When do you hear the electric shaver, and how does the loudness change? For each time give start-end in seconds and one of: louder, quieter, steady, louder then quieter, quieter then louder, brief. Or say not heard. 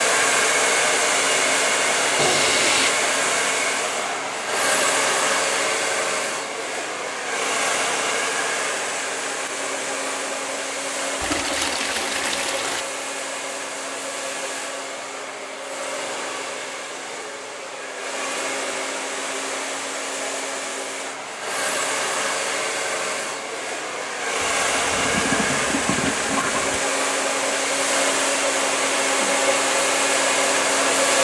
not heard.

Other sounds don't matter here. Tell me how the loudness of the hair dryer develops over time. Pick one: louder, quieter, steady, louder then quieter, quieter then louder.
quieter then louder.